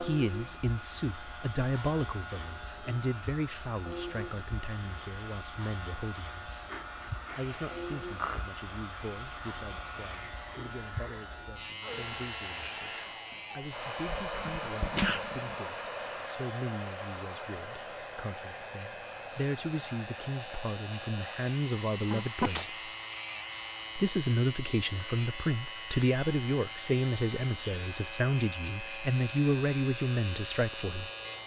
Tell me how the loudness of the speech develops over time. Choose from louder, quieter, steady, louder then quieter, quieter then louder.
quieter then louder.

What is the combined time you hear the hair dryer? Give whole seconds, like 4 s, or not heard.
31 s.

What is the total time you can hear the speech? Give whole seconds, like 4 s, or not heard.
29 s.